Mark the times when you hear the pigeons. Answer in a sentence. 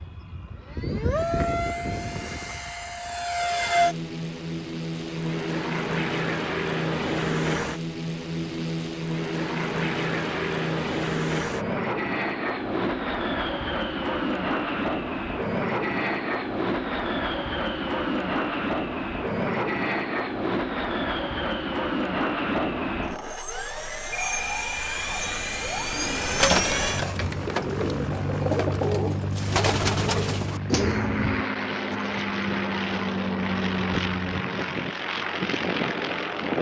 The pigeons can be heard from 25.8 to 31.3 s.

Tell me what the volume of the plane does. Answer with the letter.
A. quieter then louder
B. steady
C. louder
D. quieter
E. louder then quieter
B.